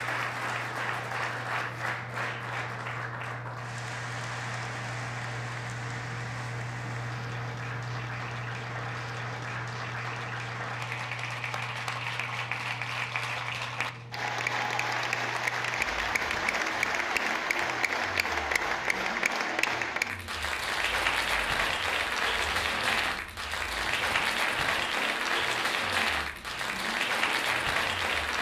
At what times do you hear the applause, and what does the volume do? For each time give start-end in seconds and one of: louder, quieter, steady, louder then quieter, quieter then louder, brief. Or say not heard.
0.0-28.3 louder.